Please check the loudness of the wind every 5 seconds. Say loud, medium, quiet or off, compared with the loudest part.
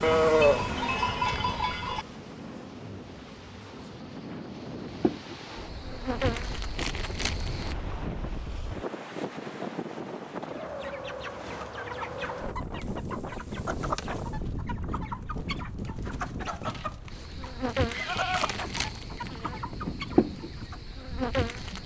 medium, loud, loud, medium, medium.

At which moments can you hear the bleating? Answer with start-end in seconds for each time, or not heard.
0.0-2.0, 16.9-18.6.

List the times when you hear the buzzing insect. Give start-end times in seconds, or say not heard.
0.0-7.8, 17.1-21.8.